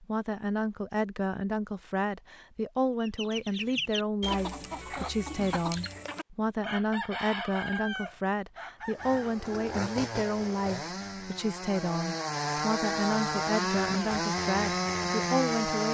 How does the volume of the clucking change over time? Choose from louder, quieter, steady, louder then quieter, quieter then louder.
quieter.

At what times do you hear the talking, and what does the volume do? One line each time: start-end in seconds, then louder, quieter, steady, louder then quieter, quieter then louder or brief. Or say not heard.
0.0-15.8 steady.